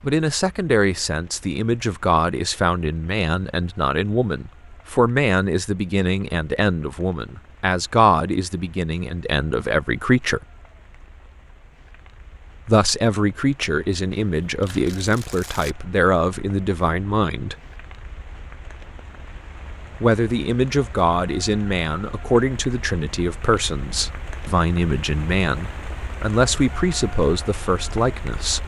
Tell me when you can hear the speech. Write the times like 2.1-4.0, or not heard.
0.0-10.4, 12.7-17.6, 20.0-28.6.